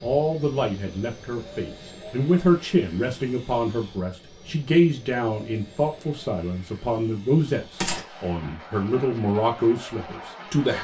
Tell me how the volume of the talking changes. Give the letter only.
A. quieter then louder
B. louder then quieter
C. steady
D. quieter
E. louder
C.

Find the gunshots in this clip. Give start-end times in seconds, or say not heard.
7.8-8.4.